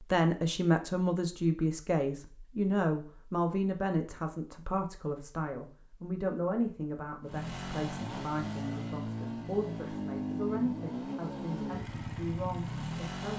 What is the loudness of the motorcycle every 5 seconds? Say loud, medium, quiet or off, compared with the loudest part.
off, loud, loud.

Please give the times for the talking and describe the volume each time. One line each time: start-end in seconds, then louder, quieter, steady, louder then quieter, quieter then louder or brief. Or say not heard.
0.1-13.3 quieter.